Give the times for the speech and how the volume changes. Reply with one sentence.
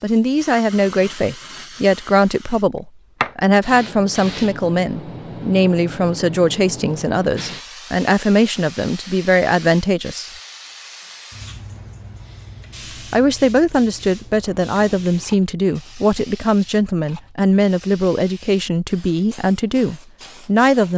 The speech can be heard from 0.0 to 10.3 s, at a steady volume; and from 13.1 to 20.9 s, at a steady volume.